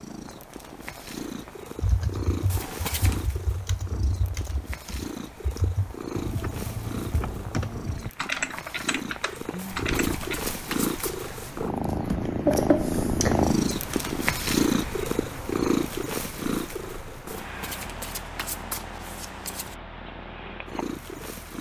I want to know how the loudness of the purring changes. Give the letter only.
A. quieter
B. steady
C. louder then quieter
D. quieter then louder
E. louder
C.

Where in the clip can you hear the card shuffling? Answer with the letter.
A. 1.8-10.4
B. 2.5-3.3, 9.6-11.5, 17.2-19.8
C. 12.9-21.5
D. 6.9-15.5
B.